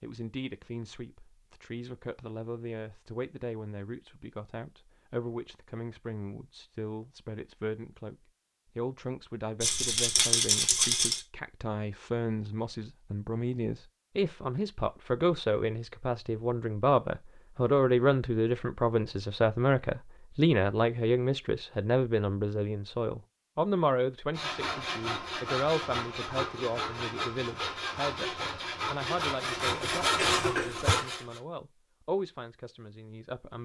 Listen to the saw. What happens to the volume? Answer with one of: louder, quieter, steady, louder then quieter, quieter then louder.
louder.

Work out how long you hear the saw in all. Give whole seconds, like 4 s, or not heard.
7 s.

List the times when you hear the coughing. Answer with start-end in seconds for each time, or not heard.
30.1-31.0.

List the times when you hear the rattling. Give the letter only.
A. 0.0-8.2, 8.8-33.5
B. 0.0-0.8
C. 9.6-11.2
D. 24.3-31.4
C.